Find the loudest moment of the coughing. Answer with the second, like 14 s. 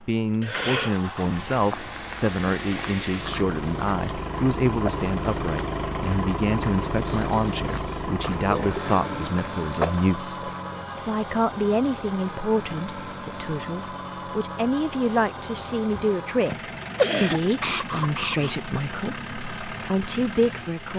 17 s.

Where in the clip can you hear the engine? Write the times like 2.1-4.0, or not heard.
0.0-20.9.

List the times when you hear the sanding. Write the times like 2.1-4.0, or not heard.
not heard.